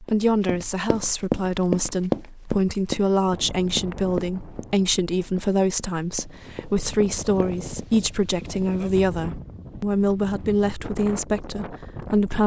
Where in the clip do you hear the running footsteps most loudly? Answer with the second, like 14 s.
2 s.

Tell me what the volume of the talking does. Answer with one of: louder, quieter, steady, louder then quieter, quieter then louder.
steady.